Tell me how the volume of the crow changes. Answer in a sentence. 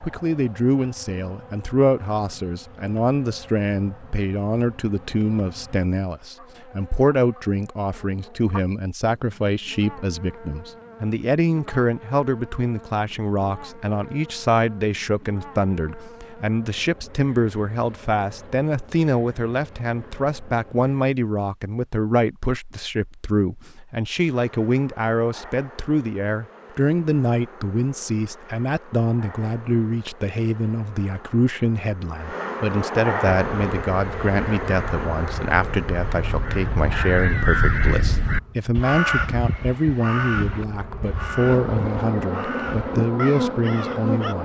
The loudness of the crow goes up, then down.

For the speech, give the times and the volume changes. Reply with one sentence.
The speech can be heard from 0.0 to 44.4 s, at a steady volume.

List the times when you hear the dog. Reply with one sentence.
The dog can't be heard in this clip.